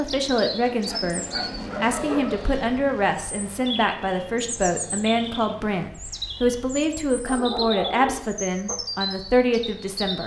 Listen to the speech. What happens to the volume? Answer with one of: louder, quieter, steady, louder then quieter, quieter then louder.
steady.